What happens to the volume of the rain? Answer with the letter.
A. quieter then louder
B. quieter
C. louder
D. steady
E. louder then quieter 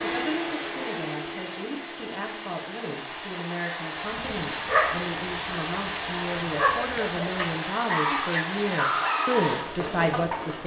C.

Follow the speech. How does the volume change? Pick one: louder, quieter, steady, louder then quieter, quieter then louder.
louder.